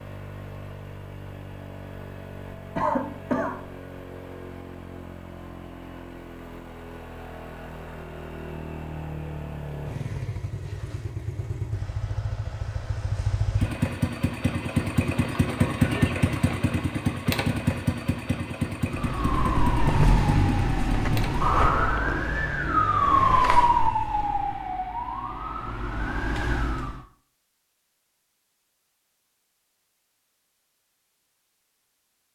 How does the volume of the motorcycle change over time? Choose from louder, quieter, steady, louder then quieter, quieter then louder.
louder then quieter.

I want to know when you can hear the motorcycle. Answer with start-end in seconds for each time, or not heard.
0.0-24.8.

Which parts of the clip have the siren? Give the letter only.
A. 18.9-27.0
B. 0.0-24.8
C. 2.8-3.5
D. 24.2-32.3
A.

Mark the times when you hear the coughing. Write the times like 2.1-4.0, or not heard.
2.8-3.5.